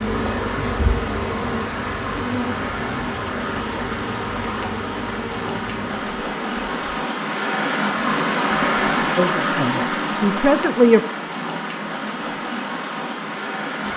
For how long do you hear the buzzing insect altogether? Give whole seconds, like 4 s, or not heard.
7 s.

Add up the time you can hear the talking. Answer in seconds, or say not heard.
2 s.